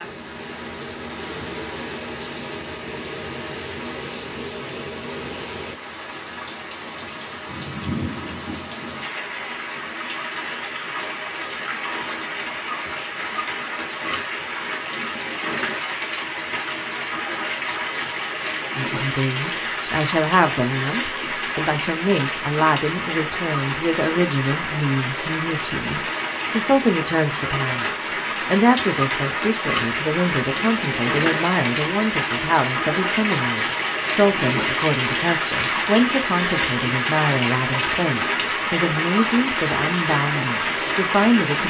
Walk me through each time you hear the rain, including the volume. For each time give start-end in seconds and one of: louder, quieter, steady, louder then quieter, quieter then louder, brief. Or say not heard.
0.0-41.6 louder.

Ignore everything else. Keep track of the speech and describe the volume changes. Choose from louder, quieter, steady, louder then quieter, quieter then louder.
steady.